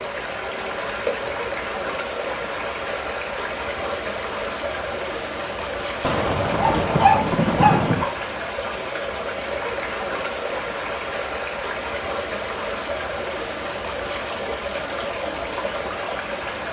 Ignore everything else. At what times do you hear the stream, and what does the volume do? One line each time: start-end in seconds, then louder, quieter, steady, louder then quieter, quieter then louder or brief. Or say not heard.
0.0-16.6 steady.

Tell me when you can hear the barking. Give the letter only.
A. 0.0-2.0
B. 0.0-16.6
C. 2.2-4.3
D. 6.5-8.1
D.